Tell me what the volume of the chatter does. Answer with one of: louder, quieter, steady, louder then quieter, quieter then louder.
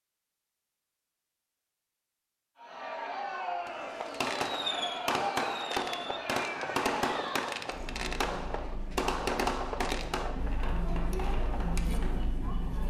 quieter then louder.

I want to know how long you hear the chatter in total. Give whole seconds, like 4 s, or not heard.
10 s.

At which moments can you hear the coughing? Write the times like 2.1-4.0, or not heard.
not heard.